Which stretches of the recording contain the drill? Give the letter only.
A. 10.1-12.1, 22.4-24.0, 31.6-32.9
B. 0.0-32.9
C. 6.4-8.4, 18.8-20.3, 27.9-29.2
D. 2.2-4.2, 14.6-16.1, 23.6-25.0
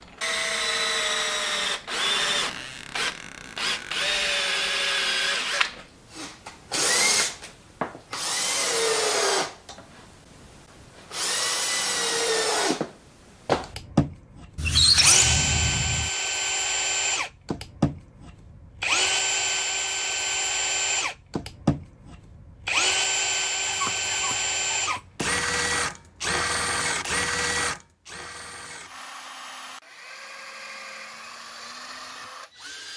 B.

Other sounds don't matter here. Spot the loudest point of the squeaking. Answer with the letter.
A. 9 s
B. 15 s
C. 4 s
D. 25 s
B.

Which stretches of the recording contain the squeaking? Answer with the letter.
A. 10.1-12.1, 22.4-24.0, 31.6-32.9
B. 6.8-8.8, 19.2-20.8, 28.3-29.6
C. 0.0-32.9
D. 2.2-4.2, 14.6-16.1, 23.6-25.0
D.